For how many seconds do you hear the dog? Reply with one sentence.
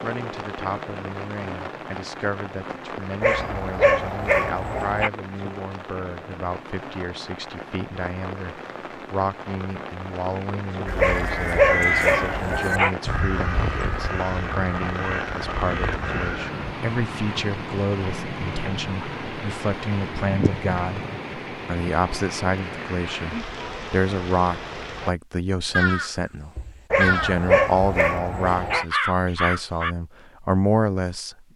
The dog can be heard for 6 seconds in total.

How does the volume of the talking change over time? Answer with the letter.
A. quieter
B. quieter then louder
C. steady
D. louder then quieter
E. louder
E.